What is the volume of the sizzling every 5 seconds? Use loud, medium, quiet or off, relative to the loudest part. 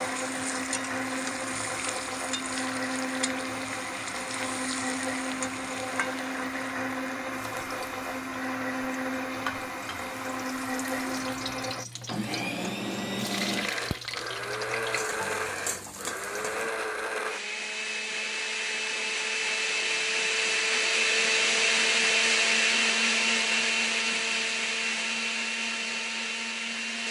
loud, loud, loud, loud, off, off.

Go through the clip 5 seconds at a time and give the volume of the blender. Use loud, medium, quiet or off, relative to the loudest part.
medium, medium, medium, medium, loud, medium.